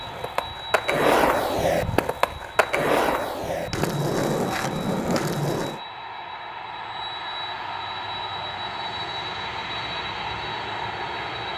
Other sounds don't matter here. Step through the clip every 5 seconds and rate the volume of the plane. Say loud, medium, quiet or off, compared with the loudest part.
medium, loud, loud.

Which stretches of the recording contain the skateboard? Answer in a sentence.
You can hear the skateboard from 0.0 to 5.8 s.